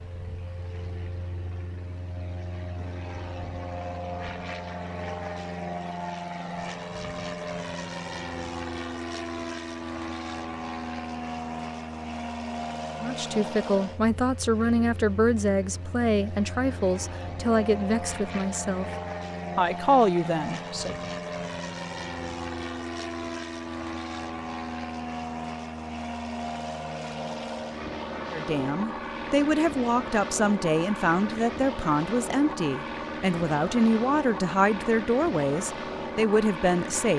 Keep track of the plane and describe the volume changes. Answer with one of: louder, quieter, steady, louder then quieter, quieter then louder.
steady.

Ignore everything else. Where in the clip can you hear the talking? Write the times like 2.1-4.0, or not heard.
13.0-18.9, 19.6-20.9, 28.3-37.1.